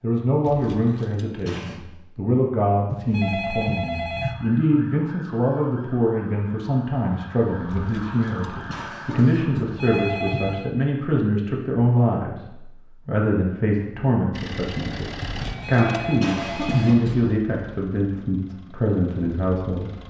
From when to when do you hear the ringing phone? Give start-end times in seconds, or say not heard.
2.9-4.3, 9.6-10.7, 15.3-16.9.